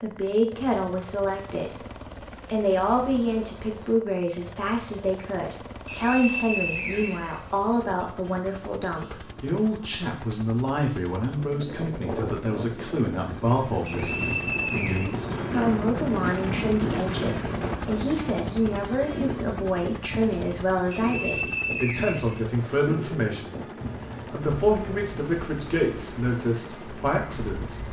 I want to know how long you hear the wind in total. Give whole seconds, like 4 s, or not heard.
16 s.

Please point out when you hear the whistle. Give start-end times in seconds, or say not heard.
5.8-7.4, 13.8-15.2, 20.9-22.4.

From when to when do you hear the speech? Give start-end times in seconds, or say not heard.
0.0-1.8, 2.5-23.6, 24.3-27.8.